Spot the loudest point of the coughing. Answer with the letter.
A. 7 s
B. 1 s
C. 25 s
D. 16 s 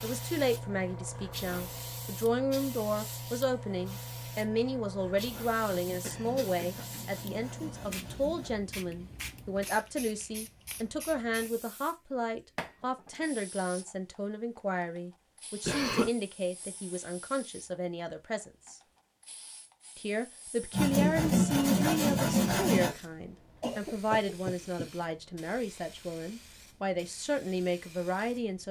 D.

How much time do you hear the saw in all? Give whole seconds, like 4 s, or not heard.
5 s.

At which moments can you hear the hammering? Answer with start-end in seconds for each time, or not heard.
not heard.